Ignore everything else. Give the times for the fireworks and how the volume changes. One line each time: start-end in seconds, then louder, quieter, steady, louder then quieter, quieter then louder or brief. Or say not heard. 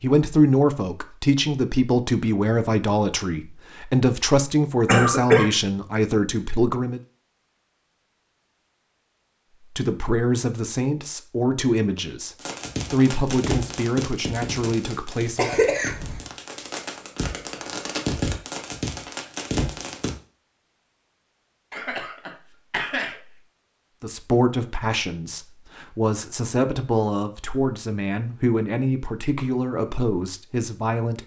12.4-20.1 quieter then louder.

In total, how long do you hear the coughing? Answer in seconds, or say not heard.
3 s.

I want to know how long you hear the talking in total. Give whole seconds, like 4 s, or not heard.
20 s.